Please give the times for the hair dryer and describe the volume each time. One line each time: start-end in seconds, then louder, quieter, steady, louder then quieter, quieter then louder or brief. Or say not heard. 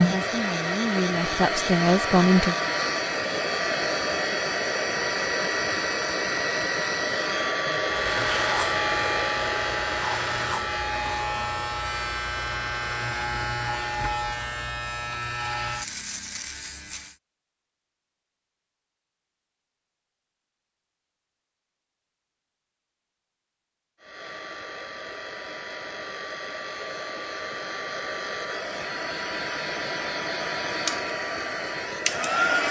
0.0-14.0 quieter
24.0-32.6 louder.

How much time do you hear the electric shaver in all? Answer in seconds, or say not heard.
9 s.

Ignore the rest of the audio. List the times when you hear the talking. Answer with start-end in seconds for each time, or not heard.
0.0-2.5.